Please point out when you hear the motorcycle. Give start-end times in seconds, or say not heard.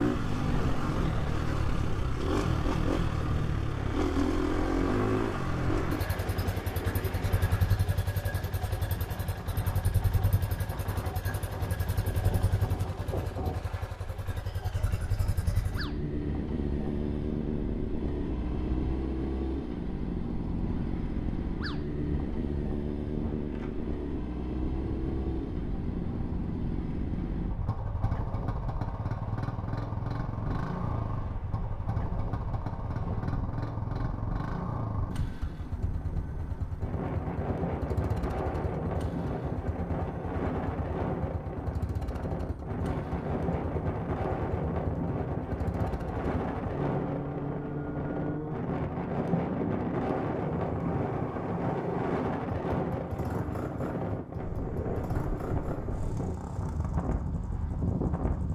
0.0-58.5.